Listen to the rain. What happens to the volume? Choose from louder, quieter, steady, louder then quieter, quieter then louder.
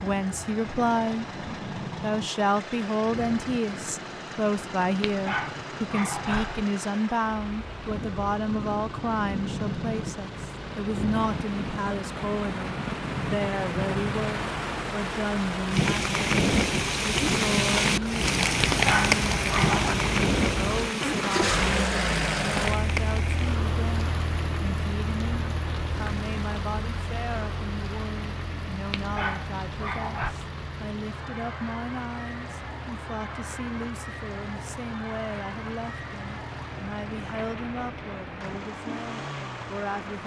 louder then quieter.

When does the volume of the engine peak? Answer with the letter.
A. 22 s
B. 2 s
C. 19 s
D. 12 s
A.